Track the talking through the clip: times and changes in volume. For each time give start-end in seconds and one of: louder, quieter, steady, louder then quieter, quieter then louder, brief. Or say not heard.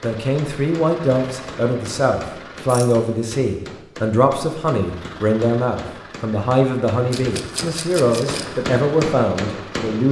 0.0-10.0 steady.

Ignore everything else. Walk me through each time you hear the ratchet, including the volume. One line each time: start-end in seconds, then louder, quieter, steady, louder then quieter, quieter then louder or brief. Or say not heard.
not heard.